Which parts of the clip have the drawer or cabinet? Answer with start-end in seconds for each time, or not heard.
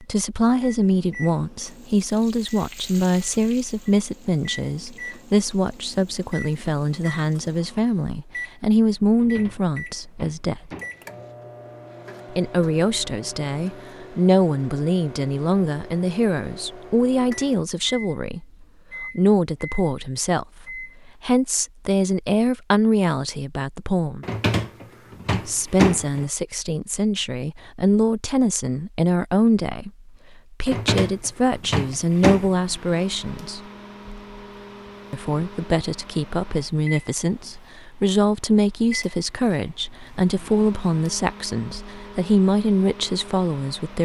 9.1-11.1, 24.2-26.3, 30.6-32.5.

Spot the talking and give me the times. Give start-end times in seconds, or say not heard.
0.0-10.7, 12.3-24.2, 25.4-33.6, 35.1-43.9.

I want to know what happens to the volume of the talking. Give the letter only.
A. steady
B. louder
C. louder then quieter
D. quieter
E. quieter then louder
A.